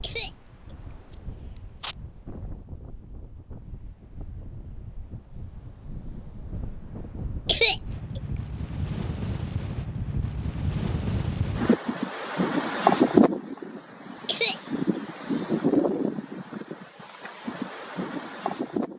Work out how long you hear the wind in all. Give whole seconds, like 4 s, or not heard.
19 s.